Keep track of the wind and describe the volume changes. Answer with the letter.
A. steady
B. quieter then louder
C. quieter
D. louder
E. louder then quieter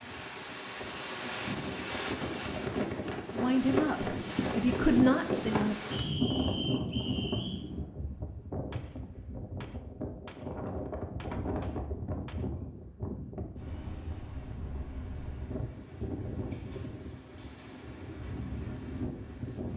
C.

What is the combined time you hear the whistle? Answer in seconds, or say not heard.
2 s.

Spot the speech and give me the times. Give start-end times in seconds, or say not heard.
3.3-5.8.